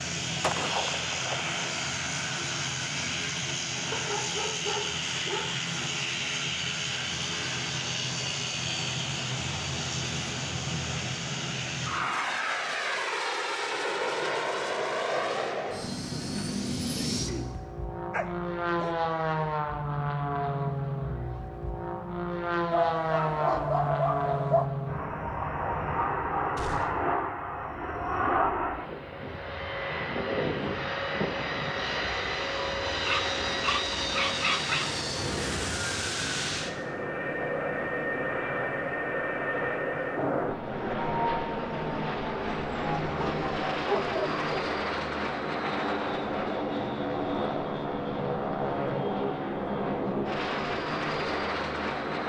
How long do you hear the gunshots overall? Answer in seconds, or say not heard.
2 s.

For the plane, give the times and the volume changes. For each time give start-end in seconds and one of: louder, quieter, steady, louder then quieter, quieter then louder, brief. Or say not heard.
0.0-52.2 steady.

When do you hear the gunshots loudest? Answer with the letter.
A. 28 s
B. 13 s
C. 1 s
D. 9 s
C.